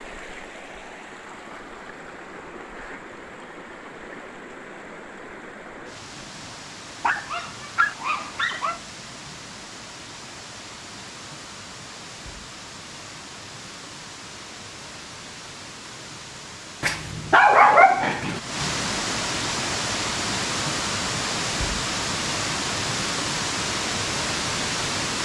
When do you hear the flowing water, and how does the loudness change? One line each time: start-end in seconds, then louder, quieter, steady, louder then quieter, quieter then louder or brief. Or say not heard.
0.0-25.1 louder.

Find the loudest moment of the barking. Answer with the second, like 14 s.
18 s.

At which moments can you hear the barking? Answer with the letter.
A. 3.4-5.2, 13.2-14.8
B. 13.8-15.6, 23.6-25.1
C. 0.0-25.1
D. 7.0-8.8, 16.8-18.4
D.